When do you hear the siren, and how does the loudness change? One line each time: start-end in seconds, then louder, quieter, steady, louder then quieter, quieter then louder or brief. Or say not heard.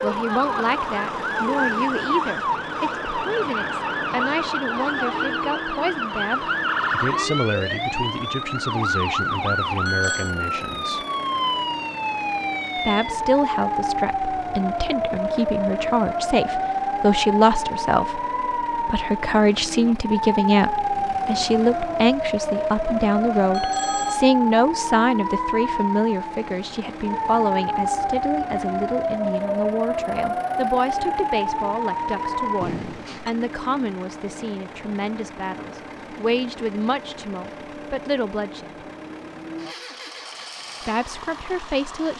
0.0-32.6 steady.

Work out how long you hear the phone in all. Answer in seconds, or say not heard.
3 s.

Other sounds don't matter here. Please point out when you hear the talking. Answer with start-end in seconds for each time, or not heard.
0.0-11.1, 12.8-18.2, 18.9-38.7, 40.8-42.1.